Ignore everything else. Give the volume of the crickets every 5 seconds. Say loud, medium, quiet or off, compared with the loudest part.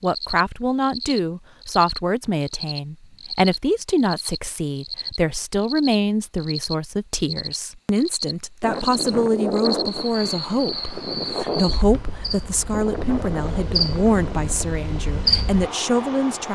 medium, medium, medium, loud.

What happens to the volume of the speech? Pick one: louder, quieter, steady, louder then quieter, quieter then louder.
steady.